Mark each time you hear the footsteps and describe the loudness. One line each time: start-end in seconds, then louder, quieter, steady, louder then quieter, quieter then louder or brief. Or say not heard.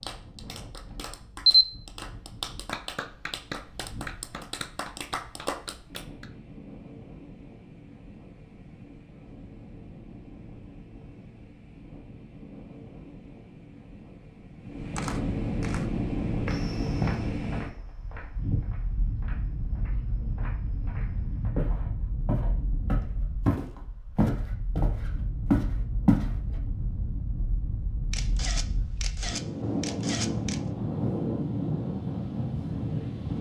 16.4-26.3 quieter then louder.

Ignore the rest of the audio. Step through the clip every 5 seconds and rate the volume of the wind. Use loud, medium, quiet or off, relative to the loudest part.
quiet, quiet, quiet, loud, medium, medium, loud.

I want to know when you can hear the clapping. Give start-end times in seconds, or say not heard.
0.0-6.3.